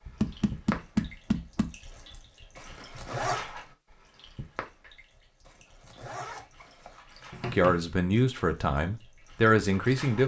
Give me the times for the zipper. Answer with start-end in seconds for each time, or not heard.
2.5-3.5, 5.5-7.0.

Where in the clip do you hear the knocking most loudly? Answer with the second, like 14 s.
1 s.